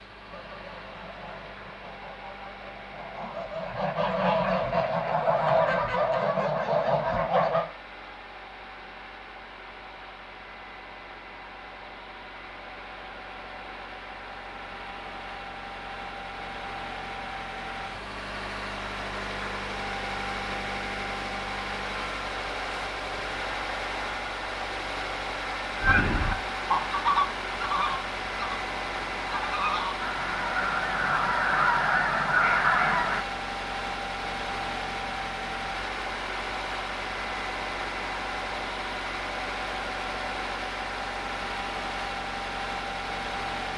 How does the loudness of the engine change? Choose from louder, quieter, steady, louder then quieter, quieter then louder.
louder.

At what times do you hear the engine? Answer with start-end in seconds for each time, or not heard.
0.0-43.7.